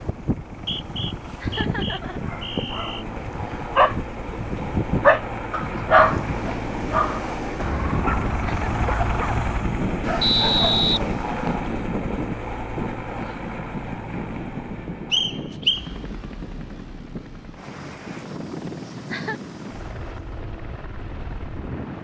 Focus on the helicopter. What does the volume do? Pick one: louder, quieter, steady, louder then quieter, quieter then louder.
louder then quieter.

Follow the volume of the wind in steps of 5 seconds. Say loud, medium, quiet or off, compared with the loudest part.
loud, loud, loud, medium, medium.